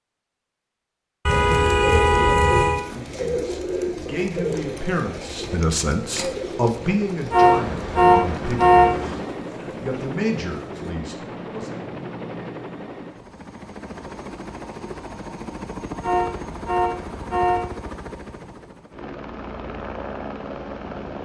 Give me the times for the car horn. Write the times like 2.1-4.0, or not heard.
1.2-2.8, 7.3-9.2, 16.0-17.6.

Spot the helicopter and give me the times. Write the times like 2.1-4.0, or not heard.
6.2-21.1.